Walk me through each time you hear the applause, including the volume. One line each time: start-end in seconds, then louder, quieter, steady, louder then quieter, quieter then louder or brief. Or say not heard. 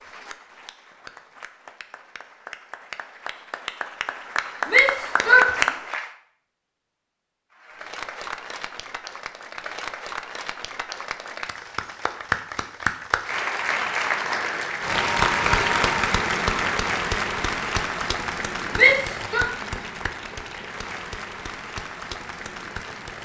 0.0-6.1 louder
7.5-23.2 louder then quieter.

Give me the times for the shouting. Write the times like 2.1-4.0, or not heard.
4.7-5.5, 18.8-19.4.